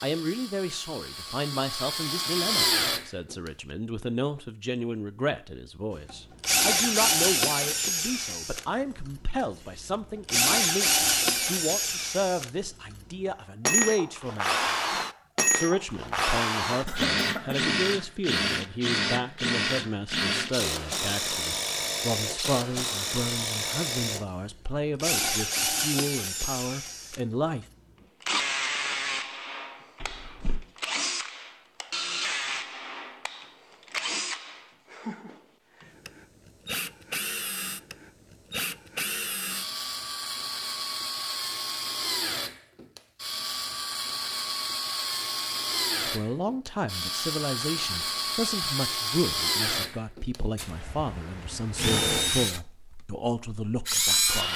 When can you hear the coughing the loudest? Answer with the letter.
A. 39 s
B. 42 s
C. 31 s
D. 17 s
D.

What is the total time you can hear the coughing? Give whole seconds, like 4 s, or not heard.
2 s.